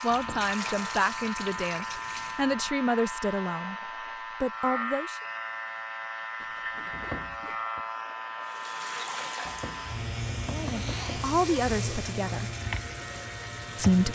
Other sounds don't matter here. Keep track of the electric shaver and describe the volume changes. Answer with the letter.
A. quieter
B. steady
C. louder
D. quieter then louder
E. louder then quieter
B.